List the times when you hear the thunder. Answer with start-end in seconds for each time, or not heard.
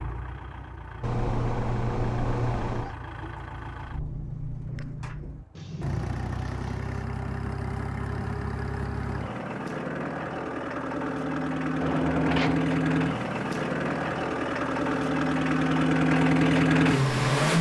5.5-7.0.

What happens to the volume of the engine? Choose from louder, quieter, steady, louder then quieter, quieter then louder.
louder.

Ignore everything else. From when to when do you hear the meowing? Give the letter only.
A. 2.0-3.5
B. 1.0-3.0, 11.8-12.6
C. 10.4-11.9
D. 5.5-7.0
B.